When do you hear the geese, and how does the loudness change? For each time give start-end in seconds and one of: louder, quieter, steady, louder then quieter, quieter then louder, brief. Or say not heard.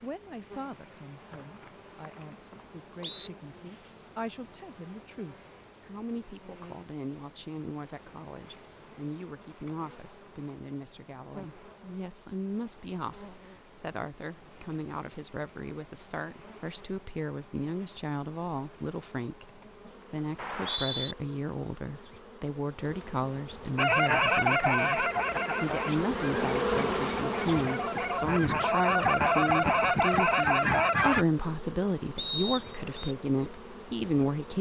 23.8-31.2 quieter then louder.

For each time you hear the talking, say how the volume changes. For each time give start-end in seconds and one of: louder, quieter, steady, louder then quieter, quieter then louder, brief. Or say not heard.
0.0-34.5 louder.